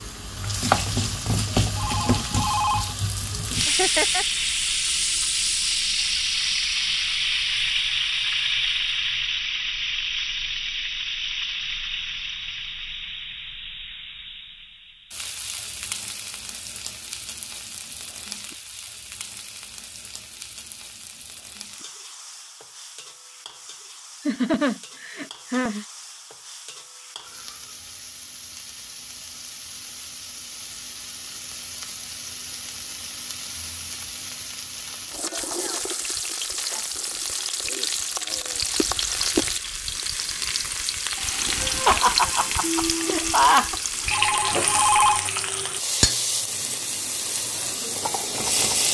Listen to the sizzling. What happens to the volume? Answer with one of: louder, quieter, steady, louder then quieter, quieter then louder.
quieter then louder.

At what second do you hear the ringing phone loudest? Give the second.
45 s.